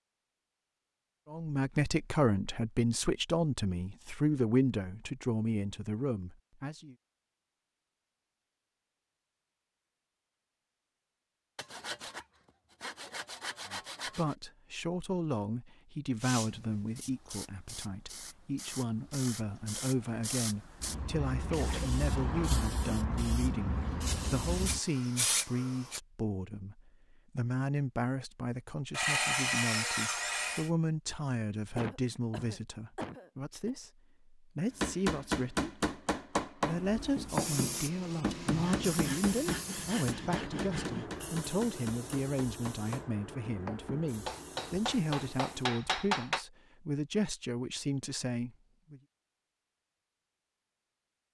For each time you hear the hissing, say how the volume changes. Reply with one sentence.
You can hear the hissing from 16.2 to 26.0 s, getting louder; and from 36.6 to 45.7 s, getting quieter.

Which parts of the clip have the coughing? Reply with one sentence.
The coughing can be heard from 21.5 to 22.5 s and from 31.8 to 33.7 s.